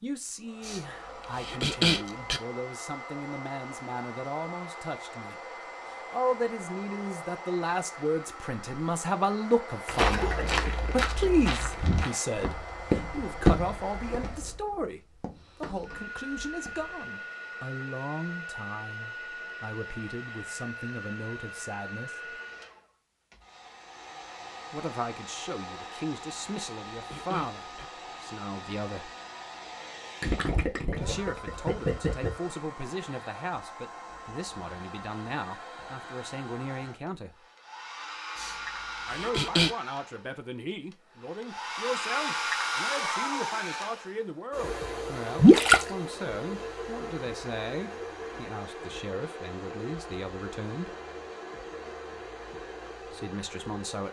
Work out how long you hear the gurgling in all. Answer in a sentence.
The gurgling can be heard for 4 seconds in total.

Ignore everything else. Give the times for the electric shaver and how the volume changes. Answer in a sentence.
You can't hear the electric shaver here.